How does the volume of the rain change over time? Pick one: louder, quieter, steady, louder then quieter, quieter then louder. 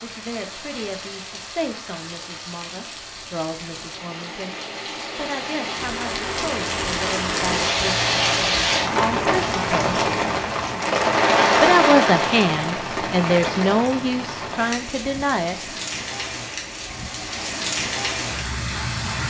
louder then quieter.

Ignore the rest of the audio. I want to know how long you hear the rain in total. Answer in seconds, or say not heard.
19 s.